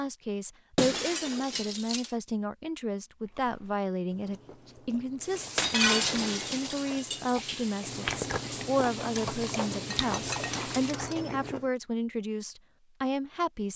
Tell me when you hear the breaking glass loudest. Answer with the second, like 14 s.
6 s.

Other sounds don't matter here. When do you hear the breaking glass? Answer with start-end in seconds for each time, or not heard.
0.8-2.1, 5.5-7.3, 10.1-11.3.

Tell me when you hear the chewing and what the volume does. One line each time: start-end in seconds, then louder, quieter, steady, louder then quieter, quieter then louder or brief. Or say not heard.
3.2-11.7 louder.